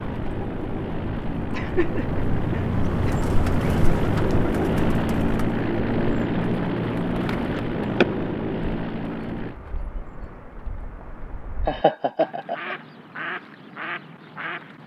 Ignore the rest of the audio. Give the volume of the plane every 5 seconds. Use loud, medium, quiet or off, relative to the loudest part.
loud, loud, off.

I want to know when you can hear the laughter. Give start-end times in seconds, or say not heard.
1.5-3.2, 7.5-8.1, 11.7-12.8.